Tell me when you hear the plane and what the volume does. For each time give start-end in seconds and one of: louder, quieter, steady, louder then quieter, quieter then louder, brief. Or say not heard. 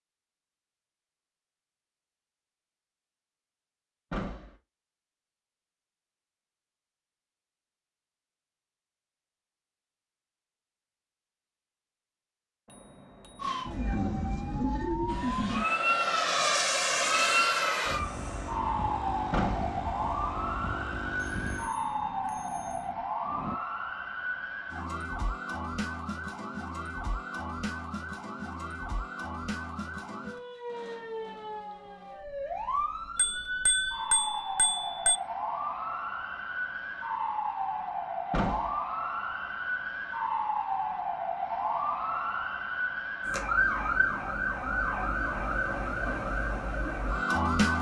15.1-23.6 quieter.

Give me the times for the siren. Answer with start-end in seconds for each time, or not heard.
13.4-47.7.